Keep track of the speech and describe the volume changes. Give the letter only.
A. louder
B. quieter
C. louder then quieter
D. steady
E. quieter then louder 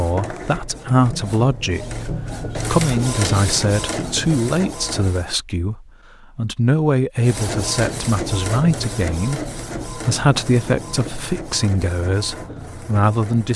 D.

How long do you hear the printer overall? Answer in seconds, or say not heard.
12 s.